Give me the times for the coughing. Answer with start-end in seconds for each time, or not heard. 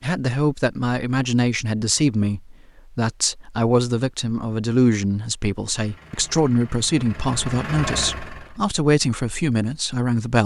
not heard.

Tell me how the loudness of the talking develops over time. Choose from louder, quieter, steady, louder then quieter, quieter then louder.
steady.